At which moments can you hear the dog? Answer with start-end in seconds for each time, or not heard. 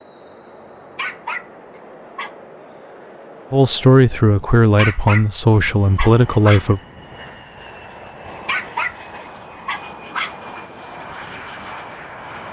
0.9-2.4, 4.8-6.7, 8.4-10.3.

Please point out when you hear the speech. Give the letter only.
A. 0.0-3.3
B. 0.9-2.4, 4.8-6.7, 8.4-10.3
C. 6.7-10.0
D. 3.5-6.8
D.